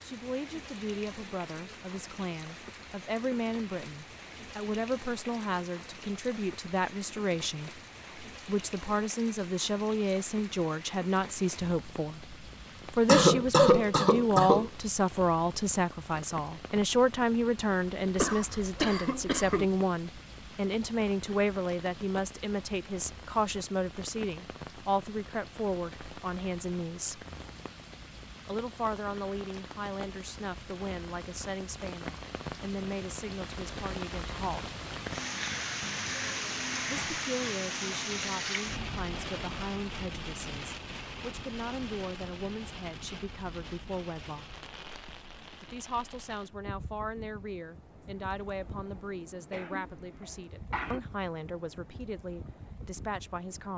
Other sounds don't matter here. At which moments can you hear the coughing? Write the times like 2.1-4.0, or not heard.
13.1-14.7, 18.1-19.6, 49.5-51.0.